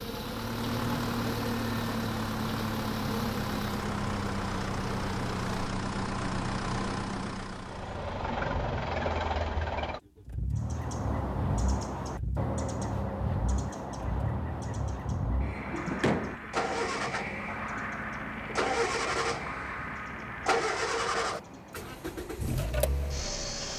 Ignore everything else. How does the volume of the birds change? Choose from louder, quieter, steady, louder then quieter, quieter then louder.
quieter.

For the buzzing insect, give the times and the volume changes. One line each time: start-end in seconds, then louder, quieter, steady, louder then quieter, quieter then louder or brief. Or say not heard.
0.0-5.7 steady.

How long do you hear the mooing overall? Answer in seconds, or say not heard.
not heard.